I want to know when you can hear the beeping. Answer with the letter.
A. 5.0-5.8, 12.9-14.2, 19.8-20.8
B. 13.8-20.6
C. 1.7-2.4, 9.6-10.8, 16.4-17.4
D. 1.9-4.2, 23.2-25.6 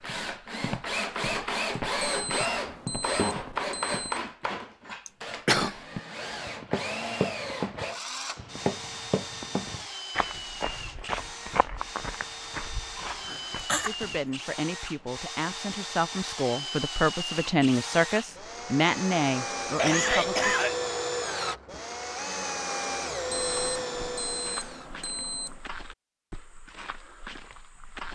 D.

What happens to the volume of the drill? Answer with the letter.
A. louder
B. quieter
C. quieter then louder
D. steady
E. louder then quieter
C.